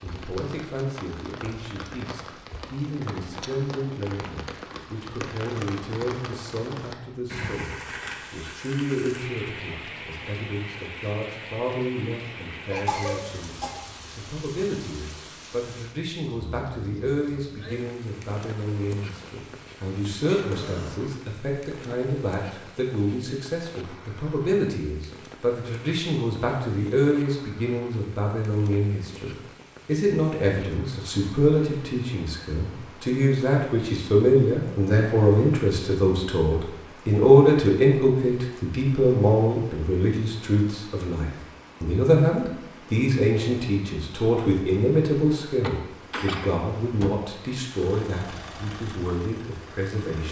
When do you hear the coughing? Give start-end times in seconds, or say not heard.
12.2-13.8, 20.2-20.9, 45.6-46.5.